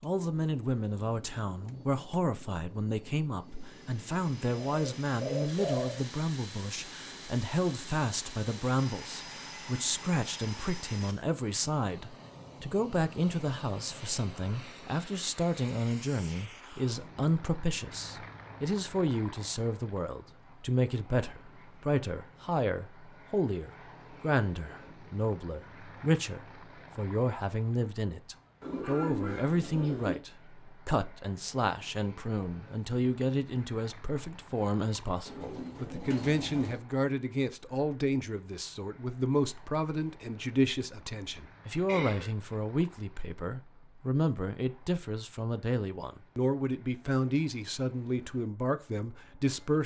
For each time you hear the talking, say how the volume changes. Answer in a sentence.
You can hear the talking from 0.0 to 49.8 s, at a steady volume.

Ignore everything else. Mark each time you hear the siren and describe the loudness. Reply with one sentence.
The siren can't be heard in this clip.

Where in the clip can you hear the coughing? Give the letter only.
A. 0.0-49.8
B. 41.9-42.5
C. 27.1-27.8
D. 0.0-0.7
B.